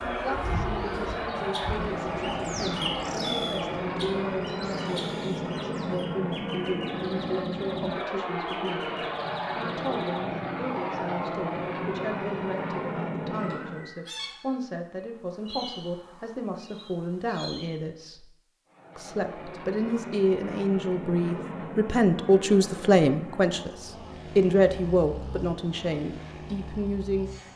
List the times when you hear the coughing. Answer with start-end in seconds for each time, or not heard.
not heard.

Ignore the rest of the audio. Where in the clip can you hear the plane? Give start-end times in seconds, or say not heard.
0.0-13.9, 18.6-27.5.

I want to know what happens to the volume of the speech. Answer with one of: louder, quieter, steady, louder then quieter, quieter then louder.
louder.